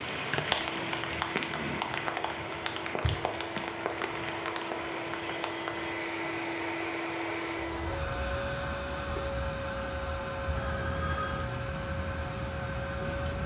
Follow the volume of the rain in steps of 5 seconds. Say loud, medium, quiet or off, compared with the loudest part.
loud, medium, medium.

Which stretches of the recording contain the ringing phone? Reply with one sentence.
The ringing phone can be heard from 10.6 to 11.5 s.